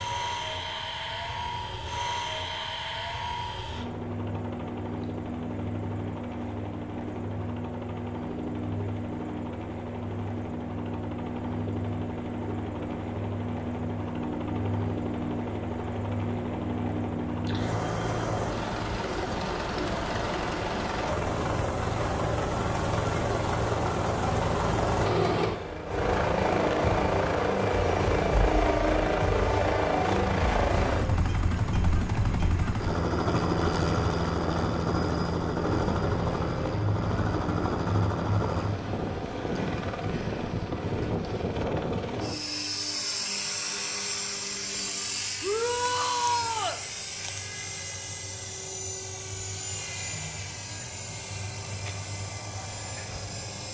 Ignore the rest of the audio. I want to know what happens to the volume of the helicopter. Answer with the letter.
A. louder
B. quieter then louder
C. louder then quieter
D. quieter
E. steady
C.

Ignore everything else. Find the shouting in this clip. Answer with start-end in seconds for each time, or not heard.
45.4-46.8.